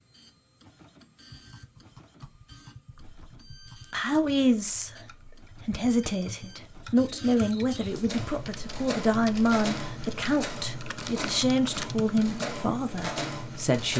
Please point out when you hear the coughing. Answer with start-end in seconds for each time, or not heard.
not heard.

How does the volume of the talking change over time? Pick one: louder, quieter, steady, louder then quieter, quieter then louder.
steady.